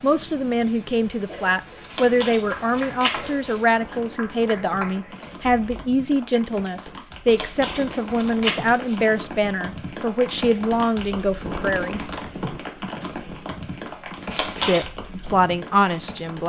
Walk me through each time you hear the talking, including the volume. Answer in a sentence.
You can hear the talking from 0.0 to 12.0 s, at a steady volume; and briefly from 14.5 to 16.4 s.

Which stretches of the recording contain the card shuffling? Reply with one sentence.
The card shuffling can be heard from 1.9 to 3.6 s, from 7.3 to 9.0 s and from 14.3 to 14.9 s.